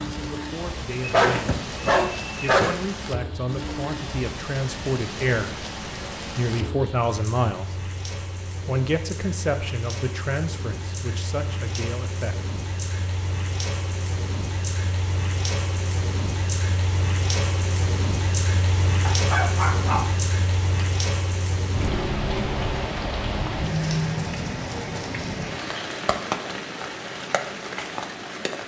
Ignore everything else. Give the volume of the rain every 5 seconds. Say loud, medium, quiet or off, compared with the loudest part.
medium, medium, medium, loud, loud, loud.